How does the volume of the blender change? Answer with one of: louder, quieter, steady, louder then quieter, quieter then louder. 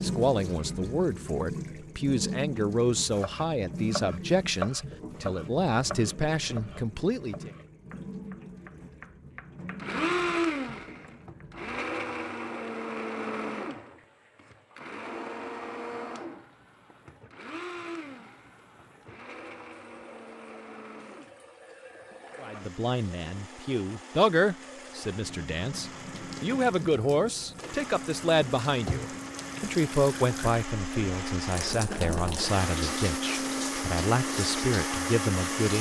quieter then louder.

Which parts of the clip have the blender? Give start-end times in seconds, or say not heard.
9.6-35.7.